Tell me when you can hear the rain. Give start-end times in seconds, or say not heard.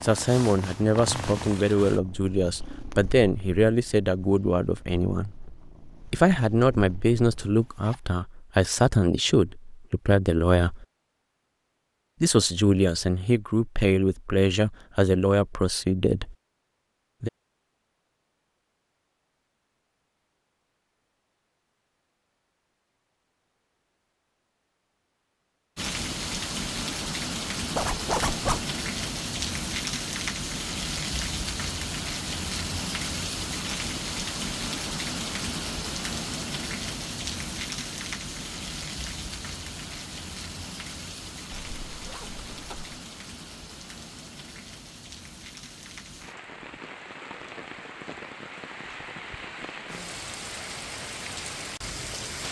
25.8-52.4.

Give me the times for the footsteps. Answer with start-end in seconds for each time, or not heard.
not heard.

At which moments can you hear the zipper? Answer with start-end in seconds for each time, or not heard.
7.4-8.0, 27.8-28.6, 41.5-43.0.